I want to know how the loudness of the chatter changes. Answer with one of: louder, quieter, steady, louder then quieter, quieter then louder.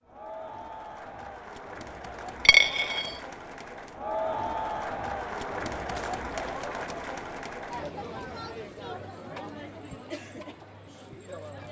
louder then quieter.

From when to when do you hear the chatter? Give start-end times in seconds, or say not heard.
0.0-11.6.